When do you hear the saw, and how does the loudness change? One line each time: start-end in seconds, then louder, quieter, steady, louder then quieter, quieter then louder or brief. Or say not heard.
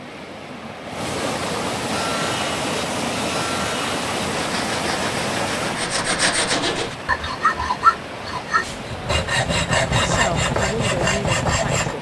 1.9-11.9 louder.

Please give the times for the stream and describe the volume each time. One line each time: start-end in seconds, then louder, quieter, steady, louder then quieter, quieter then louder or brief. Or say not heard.
0.0-11.9 quieter.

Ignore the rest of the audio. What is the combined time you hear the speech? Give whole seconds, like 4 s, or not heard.
2 s.